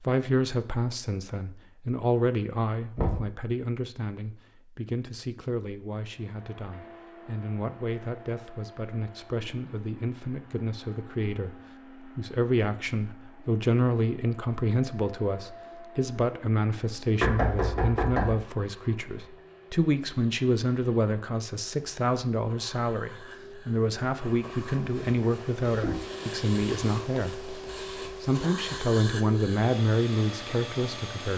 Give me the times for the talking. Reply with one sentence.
You can hear the talking from 0.0 to 27.6 s and from 28.2 to 31.3 s.